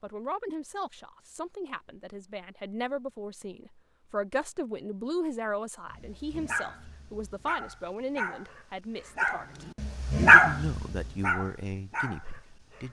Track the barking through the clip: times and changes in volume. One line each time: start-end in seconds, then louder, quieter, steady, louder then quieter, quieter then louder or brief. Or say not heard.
5.9-12.8 louder then quieter.